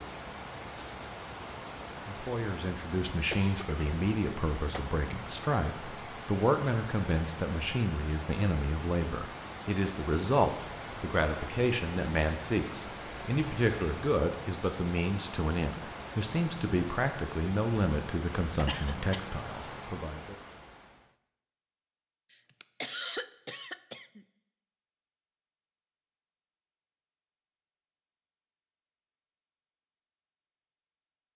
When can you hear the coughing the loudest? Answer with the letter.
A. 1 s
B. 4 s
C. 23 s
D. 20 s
C.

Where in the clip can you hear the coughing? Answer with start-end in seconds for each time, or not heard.
3.3-3.8, 18.6-19.2, 22.3-24.2.